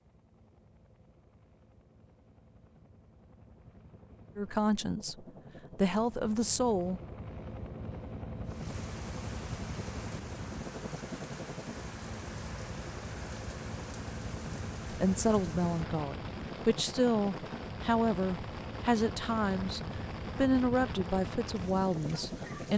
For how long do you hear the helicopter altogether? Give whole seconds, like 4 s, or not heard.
23 s.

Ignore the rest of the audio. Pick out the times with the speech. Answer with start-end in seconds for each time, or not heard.
4.3-7.0, 14.9-22.7.